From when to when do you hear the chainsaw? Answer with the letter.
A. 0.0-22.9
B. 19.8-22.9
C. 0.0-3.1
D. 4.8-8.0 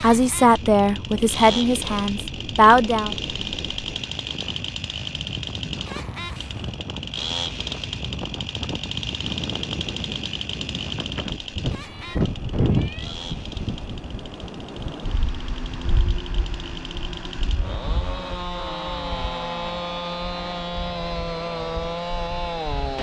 A.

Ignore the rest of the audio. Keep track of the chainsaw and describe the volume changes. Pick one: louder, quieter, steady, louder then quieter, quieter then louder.
quieter then louder.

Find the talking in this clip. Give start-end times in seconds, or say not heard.
0.0-3.1.